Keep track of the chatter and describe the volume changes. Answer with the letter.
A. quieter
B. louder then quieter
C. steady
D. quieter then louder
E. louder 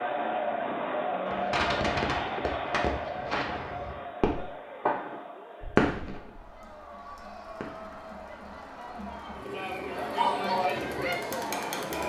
D.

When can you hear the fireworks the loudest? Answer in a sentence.
The loudest moment of the fireworks is at 6 seconds.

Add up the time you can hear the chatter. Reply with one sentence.
You can hear the chatter for 12 seconds altogether.